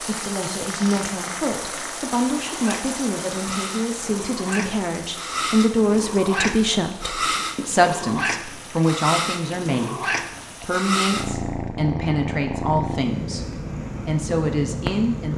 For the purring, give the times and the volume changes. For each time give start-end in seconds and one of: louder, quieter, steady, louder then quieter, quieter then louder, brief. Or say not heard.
0.0-15.3 louder.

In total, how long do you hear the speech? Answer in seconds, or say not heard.
15 s.